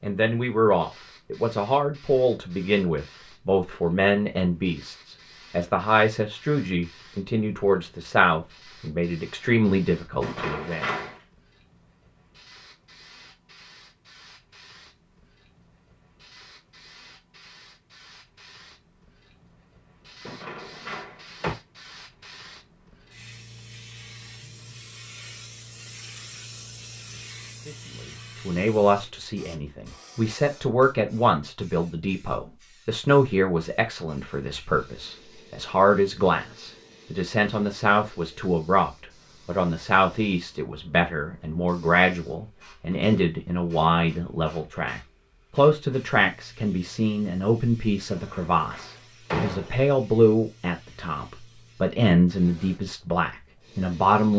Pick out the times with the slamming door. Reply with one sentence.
The slamming door can be heard from 10.2 to 11.2 s, from 20.2 to 21.6 s and from 48.1 to 49.8 s.